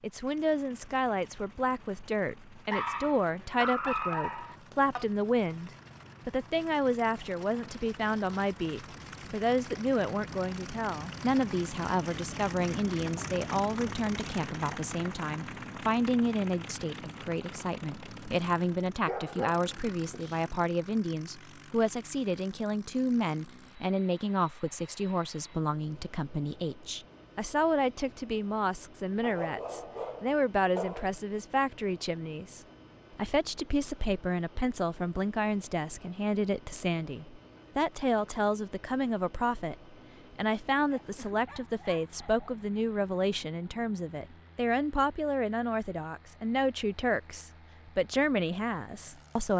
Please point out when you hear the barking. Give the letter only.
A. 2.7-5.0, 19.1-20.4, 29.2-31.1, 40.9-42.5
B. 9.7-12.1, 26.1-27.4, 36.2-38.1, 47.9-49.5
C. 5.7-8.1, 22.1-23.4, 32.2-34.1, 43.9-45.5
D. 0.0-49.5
A.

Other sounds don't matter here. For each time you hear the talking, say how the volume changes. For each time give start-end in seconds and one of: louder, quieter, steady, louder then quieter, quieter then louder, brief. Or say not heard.
0.0-49.5 steady.